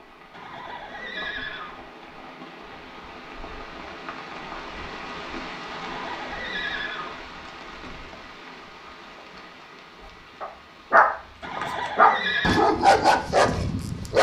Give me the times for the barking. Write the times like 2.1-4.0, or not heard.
10.1-14.1.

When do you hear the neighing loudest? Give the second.
12 s.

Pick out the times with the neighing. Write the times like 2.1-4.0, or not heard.
0.3-1.8, 5.7-7.2, 11.4-12.7.